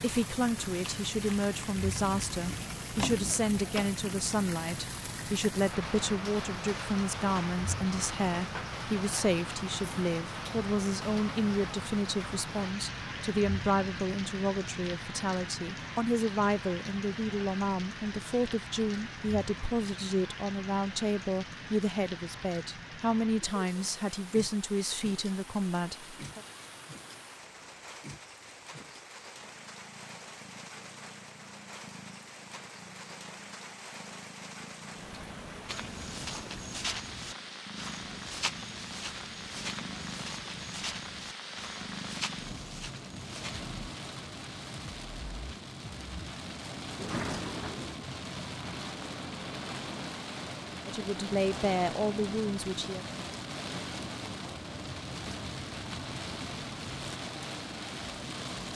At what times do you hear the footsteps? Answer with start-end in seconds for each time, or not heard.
35.6-43.6.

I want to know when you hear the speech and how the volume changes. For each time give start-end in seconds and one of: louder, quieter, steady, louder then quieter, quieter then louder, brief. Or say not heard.
0.0-26.4 steady
50.9-53.0 brief.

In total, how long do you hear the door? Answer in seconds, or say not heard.
2 s.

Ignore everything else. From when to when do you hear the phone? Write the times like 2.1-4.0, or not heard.
not heard.